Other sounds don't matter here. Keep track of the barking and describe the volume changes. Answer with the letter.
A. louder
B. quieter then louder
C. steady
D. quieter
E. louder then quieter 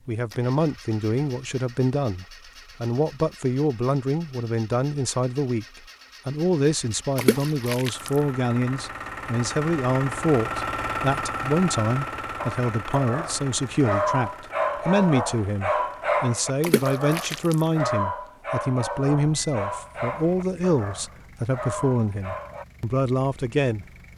D.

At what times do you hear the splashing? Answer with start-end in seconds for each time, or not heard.
7.2-8.1, 16.6-17.6.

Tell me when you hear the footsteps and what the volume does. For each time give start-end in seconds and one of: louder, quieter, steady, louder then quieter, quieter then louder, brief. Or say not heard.
not heard.